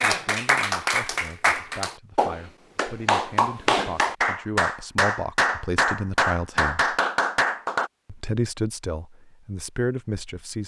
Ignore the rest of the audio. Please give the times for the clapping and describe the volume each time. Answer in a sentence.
The clapping can be heard from 0.0 to 7.9 s, at a steady volume.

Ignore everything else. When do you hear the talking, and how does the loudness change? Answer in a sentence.
You can hear the talking from 0.0 to 7.0 s, getting louder; and briefly from 8.1 to 10.6 s.